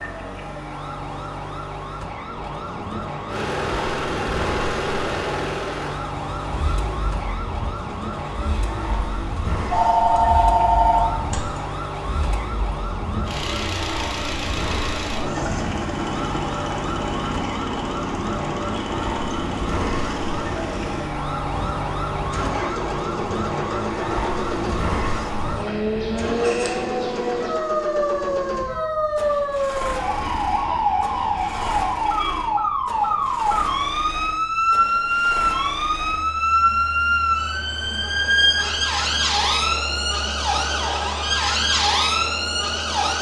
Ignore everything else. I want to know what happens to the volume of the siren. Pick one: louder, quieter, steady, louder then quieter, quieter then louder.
louder.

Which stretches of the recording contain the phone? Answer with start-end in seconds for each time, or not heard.
9.7-11.6.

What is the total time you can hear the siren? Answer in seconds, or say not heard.
43 s.